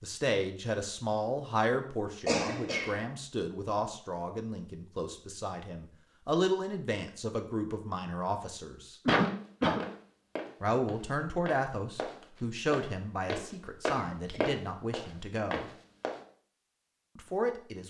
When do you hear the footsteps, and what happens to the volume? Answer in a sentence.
The footsteps can be heard from 9.2 to 16.2 s, getting louder then quieter.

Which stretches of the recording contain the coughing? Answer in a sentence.
The coughing can be heard from 2.2 to 3.0 s, from 9.1 to 9.8 s and from 13.9 to 14.4 s.